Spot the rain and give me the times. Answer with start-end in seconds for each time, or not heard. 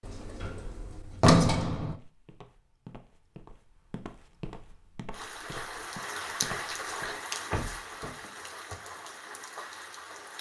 5.1-10.3.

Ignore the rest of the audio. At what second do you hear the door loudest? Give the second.
1 s.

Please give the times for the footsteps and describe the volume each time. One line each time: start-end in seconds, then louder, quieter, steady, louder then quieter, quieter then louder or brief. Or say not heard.
1.9-7.2 louder.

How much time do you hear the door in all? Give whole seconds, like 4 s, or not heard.
3 s.